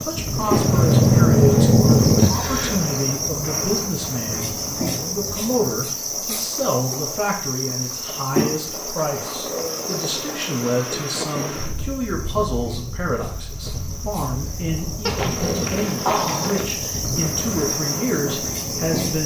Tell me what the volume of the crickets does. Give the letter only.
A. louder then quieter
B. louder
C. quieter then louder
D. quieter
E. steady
C.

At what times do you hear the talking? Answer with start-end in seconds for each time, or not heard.
0.0-19.2.